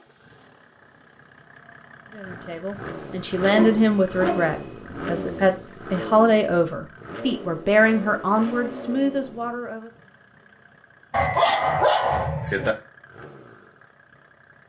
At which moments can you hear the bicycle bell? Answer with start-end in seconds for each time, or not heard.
3.9-4.8, 11.2-11.8.